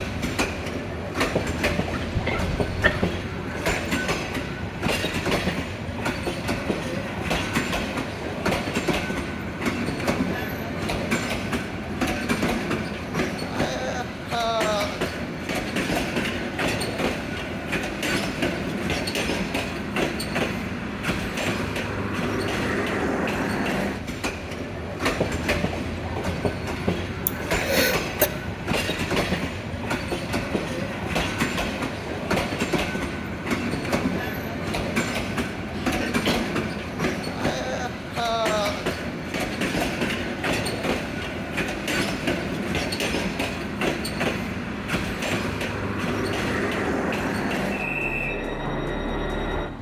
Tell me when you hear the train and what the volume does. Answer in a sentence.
You can hear the train from 0.0 to 49.7 s, at a steady volume.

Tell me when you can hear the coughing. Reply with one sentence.
You can hear the coughing from 1.9 to 3.1 s, from 27.2 to 28.3 s and from 35.7 to 36.4 s.